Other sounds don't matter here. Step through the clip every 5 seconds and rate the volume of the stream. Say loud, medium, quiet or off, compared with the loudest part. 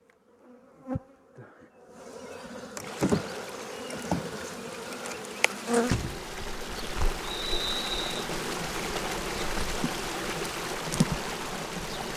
medium, loud, loud.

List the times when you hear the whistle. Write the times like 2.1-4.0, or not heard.
7.2-8.2.